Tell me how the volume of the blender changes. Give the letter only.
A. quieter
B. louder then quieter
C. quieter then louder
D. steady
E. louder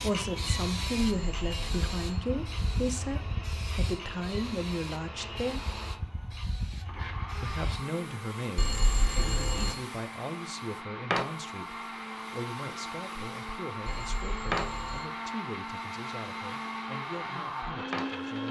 E.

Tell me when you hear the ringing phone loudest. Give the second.
9 s.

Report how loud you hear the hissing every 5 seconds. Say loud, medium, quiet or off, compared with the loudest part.
loud, medium, loud, medium.